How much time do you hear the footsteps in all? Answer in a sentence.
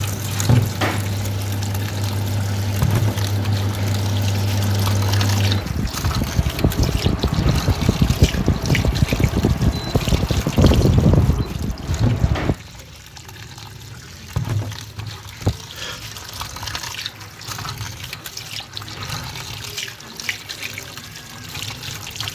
You can't hear the footsteps here.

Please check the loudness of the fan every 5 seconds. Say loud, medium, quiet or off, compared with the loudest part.
medium, loud, loud, off, off.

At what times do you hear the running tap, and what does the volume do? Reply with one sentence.
You can hear the running tap from 0.0 to 22.2 s, getting quieter.